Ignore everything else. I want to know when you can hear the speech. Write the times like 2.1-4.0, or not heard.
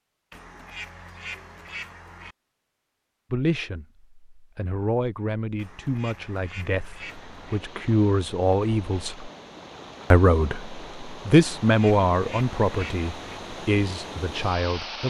3.3-9.3, 10.1-15.0.